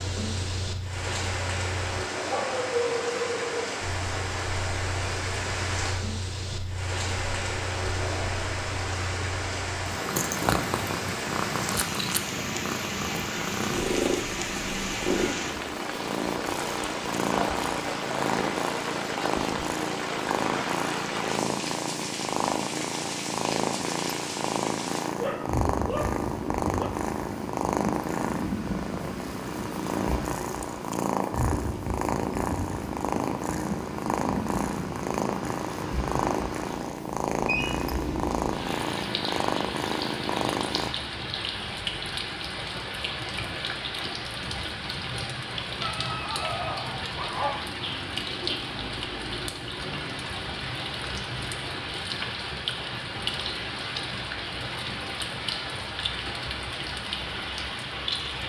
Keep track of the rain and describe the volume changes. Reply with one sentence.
The volume of the rain stays about the same.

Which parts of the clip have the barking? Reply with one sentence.
The barking can be heard from 2.3 to 3.7 s, from 25.1 to 26.9 s and from 45.8 to 47.7 s.